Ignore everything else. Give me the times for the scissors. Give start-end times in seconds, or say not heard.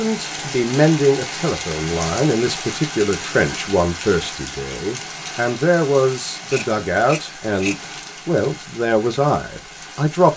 6.5-7.9.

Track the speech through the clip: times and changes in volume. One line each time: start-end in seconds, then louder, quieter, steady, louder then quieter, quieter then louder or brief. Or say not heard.
0.0-10.3 steady.